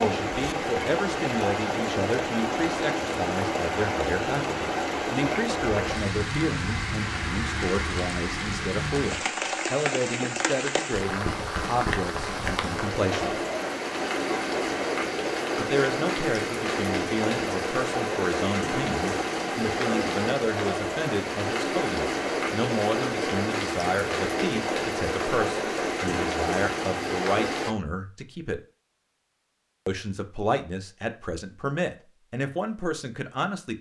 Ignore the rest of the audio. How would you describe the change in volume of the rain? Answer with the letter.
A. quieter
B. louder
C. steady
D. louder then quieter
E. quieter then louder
C.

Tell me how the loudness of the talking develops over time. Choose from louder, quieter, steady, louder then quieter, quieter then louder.
steady.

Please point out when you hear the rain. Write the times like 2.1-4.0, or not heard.
0.0-27.8.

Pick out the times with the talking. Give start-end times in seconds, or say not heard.
0.0-13.4, 15.6-28.6, 29.9-33.7.